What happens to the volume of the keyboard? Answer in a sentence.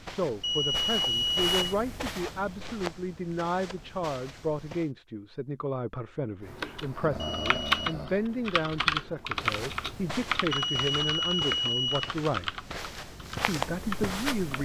The loudness of the keyboard goes down.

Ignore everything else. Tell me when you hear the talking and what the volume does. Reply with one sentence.
The talking can be heard from 0.0 to 12.6 s, at a steady volume; and briefly from 13.4 to 14.6 s.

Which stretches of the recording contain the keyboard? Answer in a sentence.
You can hear the keyboard from 6.5 to 14.6 s.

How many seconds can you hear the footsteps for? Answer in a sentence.
You can hear the footsteps for 10 seconds altogether.